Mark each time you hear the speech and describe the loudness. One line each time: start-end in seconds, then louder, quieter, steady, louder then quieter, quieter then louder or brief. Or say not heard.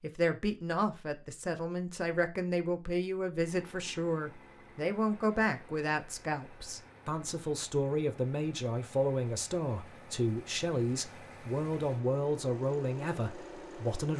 0.0-14.1 steady.